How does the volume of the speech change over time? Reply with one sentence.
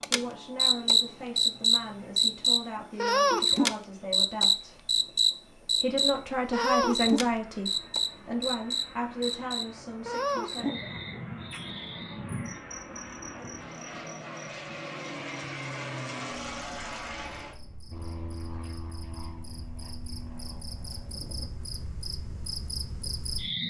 The loudness of the speech goes up, then down.